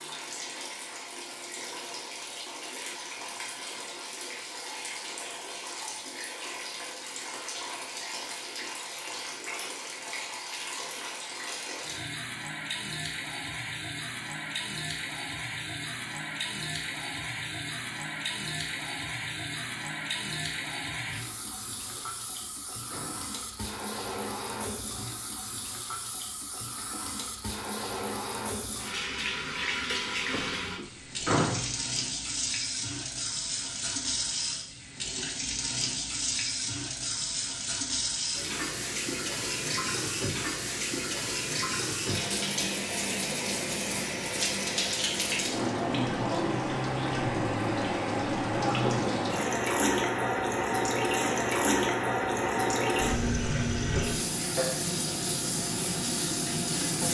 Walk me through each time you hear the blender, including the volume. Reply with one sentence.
The blender can't be heard in this clip.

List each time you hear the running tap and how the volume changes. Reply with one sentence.
You can hear the running tap from 0.0 to 57.0 s, getting louder.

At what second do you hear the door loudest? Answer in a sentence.
The volume of the door peaks at 31 seconds.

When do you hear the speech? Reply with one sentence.
You can't hear the speech here.